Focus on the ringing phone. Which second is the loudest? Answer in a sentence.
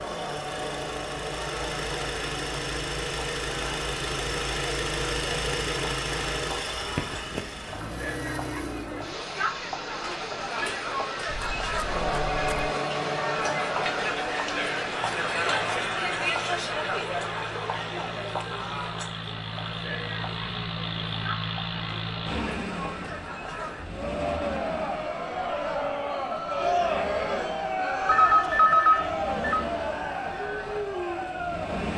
The loudest moment of the ringing phone is at 29 seconds.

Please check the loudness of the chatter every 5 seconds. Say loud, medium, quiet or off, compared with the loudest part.
medium, medium, loud, loud, medium, loud, loud.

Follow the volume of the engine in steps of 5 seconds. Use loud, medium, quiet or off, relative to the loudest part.
loud, loud, medium, medium, loud, medium, medium.